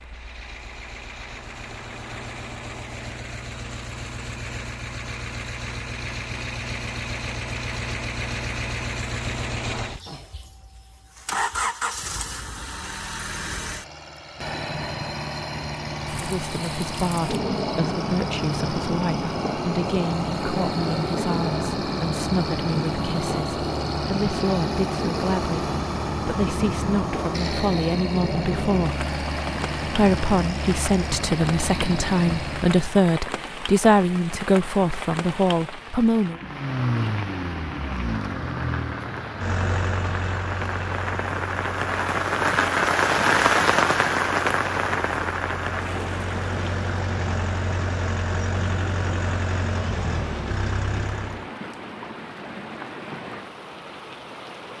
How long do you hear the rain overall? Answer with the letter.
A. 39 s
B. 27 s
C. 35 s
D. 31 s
A.